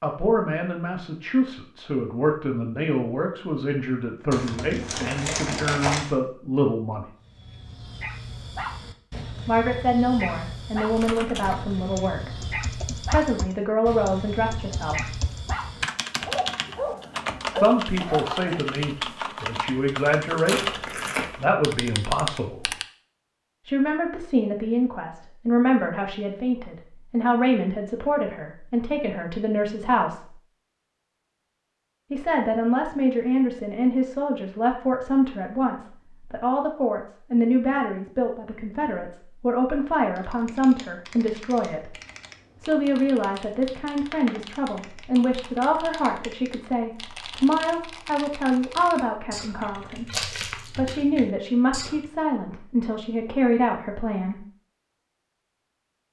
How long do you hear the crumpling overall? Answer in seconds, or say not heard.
3 s.